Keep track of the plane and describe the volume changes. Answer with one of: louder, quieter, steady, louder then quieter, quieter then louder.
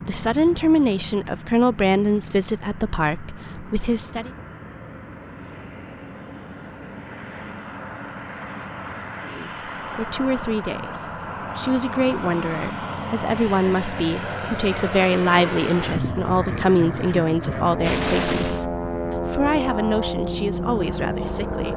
louder.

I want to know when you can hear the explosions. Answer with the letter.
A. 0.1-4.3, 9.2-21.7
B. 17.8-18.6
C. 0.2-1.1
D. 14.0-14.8
B.